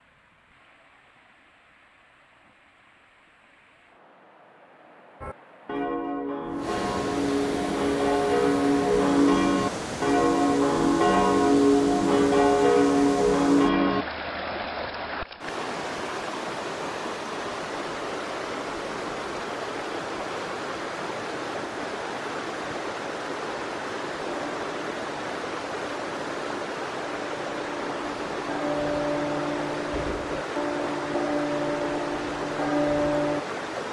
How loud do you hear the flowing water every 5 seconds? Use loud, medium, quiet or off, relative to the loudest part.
quiet, loud, loud, loud, loud, loud, loud.